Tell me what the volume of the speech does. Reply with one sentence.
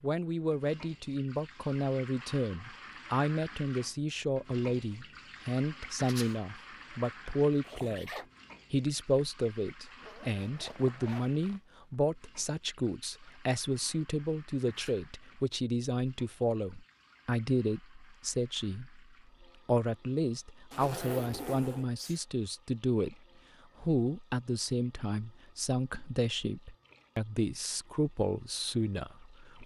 The loudness of the speech stays about the same.